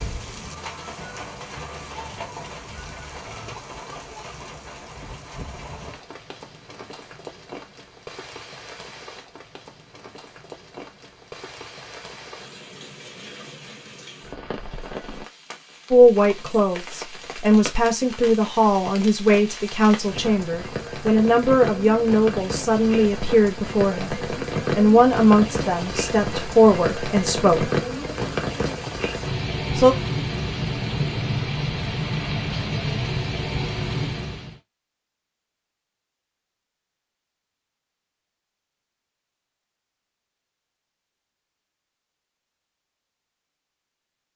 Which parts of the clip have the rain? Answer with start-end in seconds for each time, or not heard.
0.0-34.5.